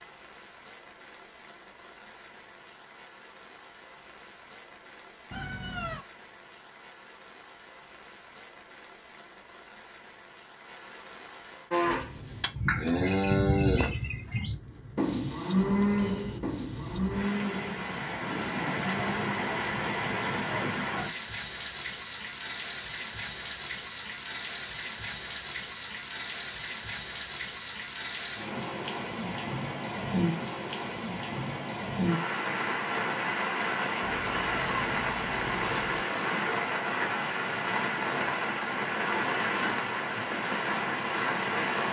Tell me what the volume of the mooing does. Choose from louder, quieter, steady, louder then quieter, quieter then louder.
quieter.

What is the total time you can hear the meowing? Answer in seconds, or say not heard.
3 s.